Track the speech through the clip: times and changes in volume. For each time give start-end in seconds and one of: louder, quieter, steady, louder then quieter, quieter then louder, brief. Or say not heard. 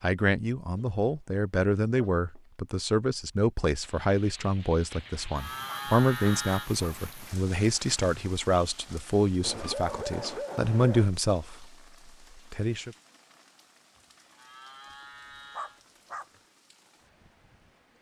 0.0-11.8 steady
12.3-12.9 brief.